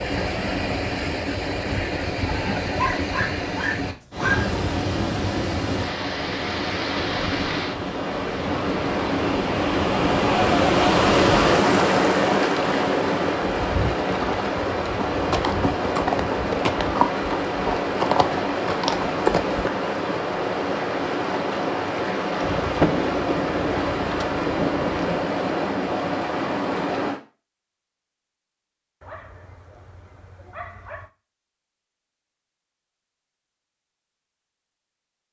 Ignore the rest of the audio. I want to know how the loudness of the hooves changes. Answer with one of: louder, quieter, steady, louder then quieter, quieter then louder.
louder.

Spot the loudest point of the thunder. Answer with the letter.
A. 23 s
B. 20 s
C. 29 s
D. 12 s
A.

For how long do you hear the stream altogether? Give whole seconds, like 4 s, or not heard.
27 s.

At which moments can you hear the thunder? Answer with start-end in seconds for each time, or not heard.
22.4-25.2.